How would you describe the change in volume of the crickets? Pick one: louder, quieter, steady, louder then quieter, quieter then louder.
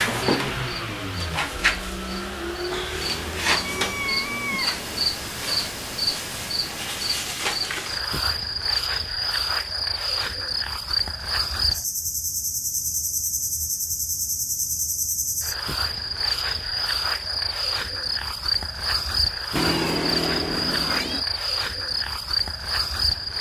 steady.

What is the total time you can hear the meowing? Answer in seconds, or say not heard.
4 s.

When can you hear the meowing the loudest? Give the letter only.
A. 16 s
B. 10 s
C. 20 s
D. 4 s
C.